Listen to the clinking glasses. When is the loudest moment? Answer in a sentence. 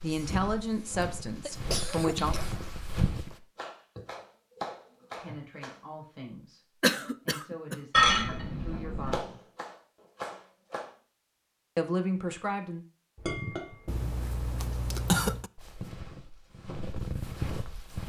The loudest moment of the clinking glasses is at 8 seconds.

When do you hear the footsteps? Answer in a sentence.
You can hear the footsteps from 0.0 to 3.4 s and from 15.6 to 18.0 s.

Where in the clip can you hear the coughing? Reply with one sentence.
The coughing can be heard from 0.1 to 2.6 s, from 6.8 to 7.8 s and from 13.8 to 15.5 s.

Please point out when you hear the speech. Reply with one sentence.
You can hear the speech from 0.0 to 2.4 s, from 5.2 to 9.4 s and from 11.8 to 12.8 s.